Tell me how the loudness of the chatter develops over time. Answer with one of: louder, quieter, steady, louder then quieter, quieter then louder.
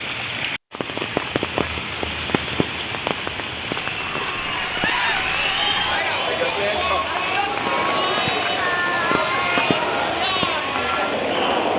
steady.